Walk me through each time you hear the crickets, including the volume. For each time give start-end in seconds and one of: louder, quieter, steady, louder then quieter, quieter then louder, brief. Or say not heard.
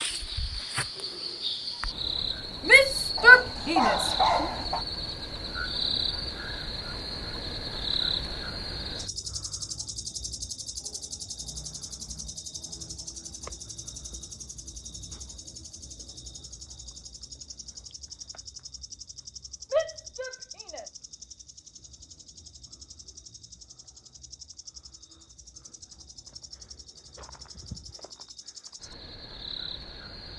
0.0-30.3 quieter.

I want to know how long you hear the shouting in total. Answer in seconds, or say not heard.
3 s.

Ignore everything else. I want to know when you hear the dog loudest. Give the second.
4 s.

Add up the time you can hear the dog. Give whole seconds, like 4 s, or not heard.
2 s.